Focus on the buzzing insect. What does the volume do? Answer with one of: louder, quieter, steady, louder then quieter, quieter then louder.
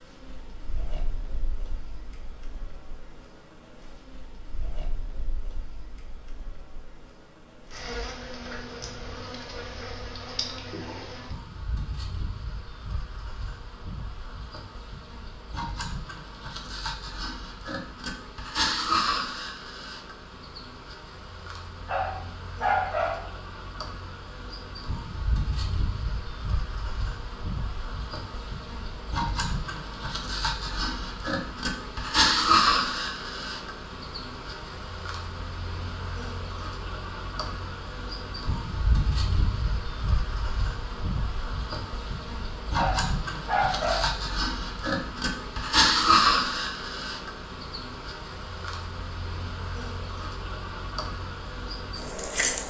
louder.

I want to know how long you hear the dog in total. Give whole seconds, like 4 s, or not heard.
3 s.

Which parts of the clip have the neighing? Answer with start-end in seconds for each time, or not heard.
not heard.